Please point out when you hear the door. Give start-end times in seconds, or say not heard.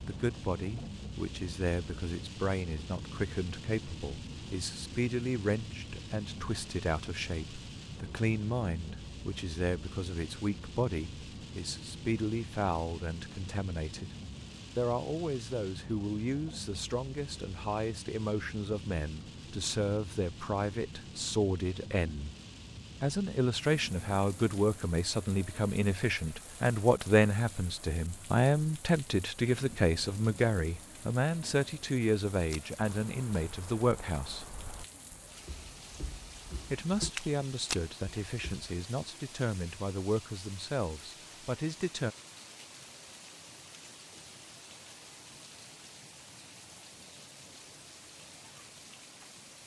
not heard.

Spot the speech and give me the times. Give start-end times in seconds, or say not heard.
0.0-14.1, 14.8-22.3, 23.0-34.5, 36.7-42.1.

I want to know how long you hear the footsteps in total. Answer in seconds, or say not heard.
6 s.